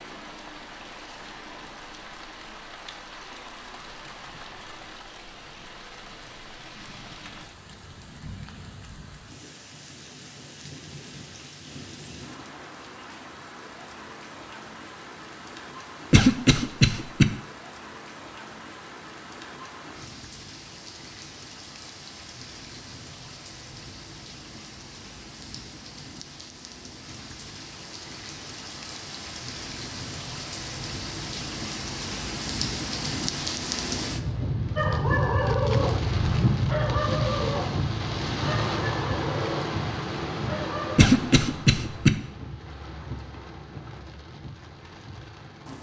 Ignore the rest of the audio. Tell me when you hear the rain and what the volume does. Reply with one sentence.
You can hear the rain from 0.0 to 45.7 s, getting louder.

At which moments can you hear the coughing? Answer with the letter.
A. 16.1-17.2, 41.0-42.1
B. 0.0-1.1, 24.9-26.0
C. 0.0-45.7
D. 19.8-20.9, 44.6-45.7
A.